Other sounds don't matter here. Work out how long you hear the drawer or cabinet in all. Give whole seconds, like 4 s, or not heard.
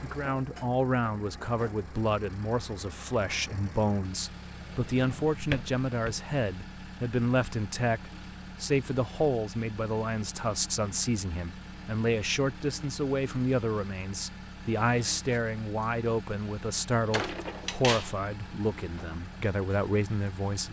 3 s.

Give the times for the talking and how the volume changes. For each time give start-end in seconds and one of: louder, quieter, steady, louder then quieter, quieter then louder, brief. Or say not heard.
0.0-20.6 steady.